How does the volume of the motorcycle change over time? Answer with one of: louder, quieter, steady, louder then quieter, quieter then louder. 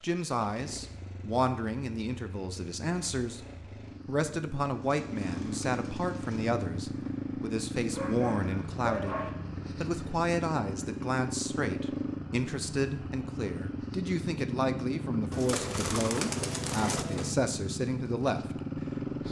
louder.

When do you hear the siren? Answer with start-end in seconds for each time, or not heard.
not heard.